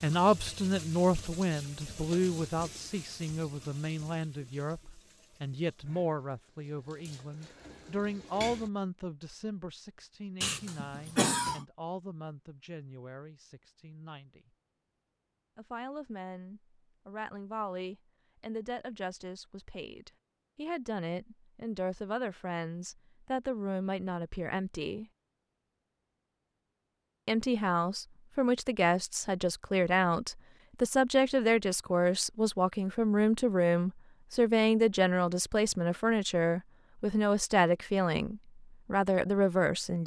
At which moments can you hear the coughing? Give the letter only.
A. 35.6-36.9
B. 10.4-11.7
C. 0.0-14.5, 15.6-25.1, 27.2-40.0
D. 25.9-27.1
B.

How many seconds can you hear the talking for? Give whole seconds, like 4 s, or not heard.
37 s.